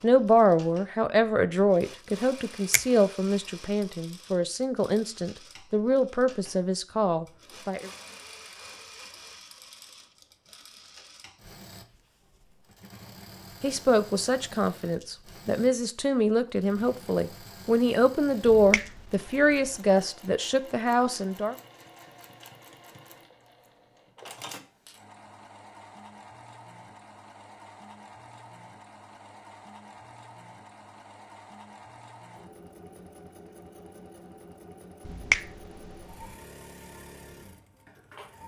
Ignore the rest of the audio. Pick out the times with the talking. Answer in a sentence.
The talking can be heard from 0.0 to 7.9 s and from 13.6 to 21.6 s.